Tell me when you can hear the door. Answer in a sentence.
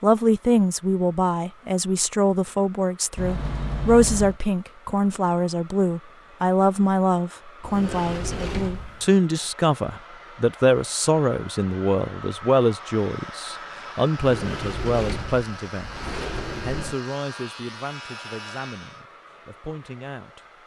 The door can be heard from 3.1 to 4.4 s, from 7.6 to 9.1 s and from 14.2 to 16.9 s.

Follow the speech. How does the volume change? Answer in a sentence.
The volume of the speech goes down.